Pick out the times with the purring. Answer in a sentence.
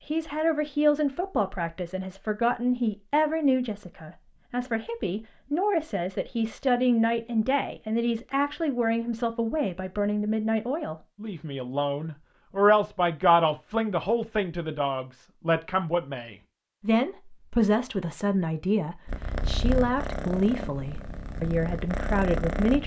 The purring can be heard from 19.1 to 22.8 s.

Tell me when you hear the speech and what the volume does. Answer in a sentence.
The speech can be heard from 0.1 to 22.8 s, at a steady volume.